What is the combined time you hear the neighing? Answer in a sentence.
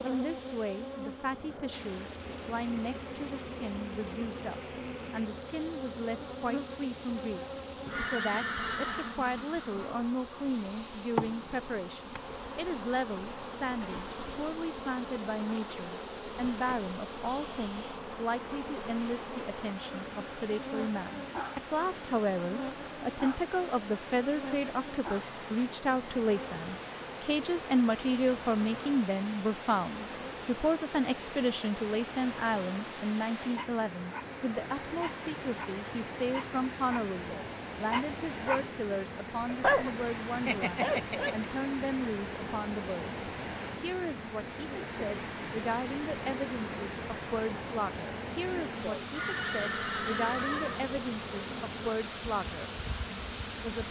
The neighing can be heard for 3 seconds in total.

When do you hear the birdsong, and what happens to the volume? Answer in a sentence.
You can't hear the birdsong here.